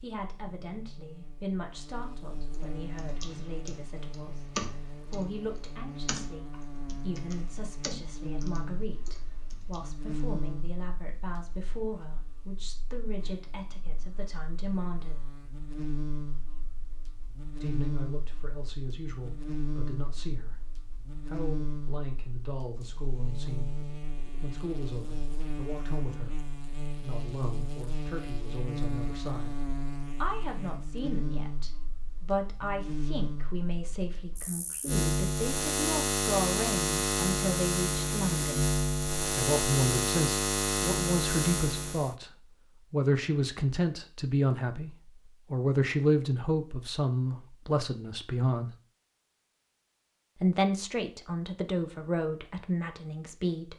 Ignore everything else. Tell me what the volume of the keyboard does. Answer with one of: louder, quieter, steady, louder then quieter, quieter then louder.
louder then quieter.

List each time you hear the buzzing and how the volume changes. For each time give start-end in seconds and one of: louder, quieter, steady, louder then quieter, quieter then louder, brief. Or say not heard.
0.0-42.1 louder.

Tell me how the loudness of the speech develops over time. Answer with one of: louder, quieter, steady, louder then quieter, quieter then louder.
louder.